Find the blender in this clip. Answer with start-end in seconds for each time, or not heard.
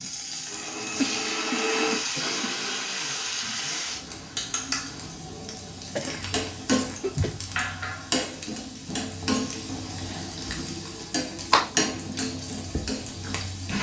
0.1-5.2.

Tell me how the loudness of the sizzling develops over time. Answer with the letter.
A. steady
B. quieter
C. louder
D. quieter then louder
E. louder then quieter
A.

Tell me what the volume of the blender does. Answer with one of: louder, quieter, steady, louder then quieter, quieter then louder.
louder then quieter.